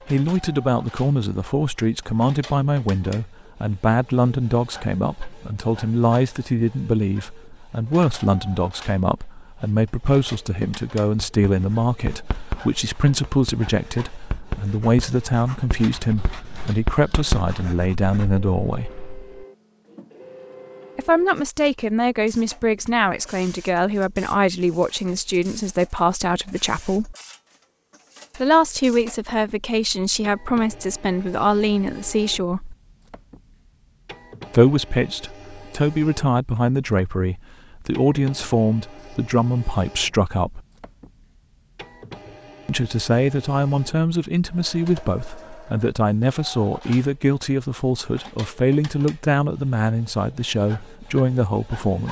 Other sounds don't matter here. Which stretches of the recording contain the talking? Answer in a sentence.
The talking can be heard from 0.1 to 18.9 s, from 20.9 to 27.1 s, from 28.4 to 32.8 s, from 34.5 to 40.6 s and from 42.6 to 52.0 s.